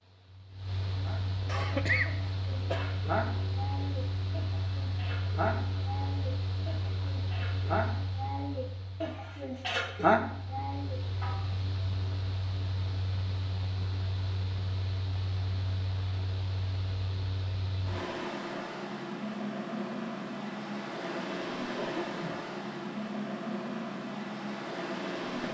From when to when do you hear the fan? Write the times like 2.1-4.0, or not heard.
0.0-25.4.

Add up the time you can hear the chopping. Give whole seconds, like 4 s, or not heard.
not heard.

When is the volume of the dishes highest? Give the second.
10 s.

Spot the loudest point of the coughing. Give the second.
2 s.